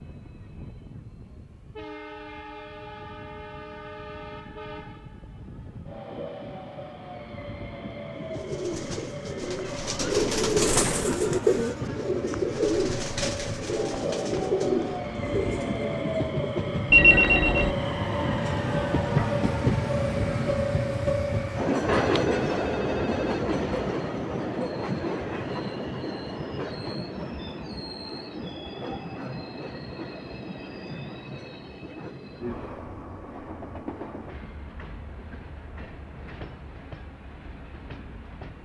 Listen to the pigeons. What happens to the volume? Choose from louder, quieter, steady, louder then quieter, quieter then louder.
louder then quieter.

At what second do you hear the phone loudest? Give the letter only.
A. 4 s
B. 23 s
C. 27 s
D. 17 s
D.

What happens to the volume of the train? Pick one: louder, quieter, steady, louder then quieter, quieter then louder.
louder then quieter.